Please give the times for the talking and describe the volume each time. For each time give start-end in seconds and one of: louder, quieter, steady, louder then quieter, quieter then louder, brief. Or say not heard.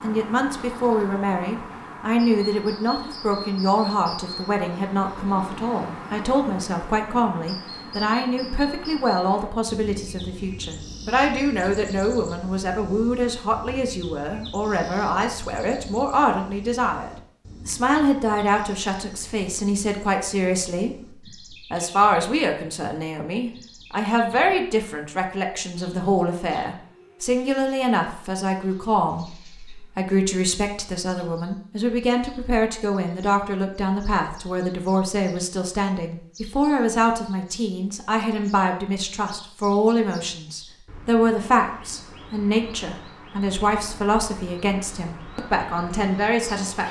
0.0-46.8 steady.